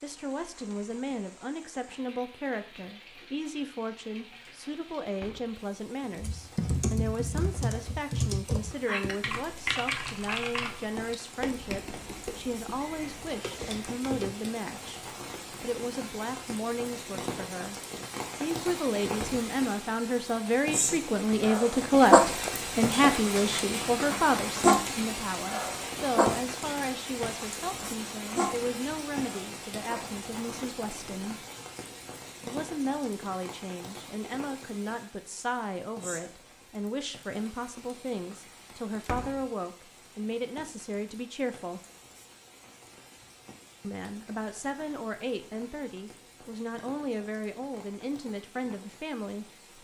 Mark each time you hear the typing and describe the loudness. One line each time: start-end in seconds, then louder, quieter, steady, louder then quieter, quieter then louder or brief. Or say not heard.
6.2-14.4 quieter.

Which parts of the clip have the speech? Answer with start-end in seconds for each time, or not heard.
0.0-17.8, 18.4-31.4, 32.5-41.8, 43.8-49.5.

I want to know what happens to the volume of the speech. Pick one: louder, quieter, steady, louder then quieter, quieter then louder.
louder then quieter.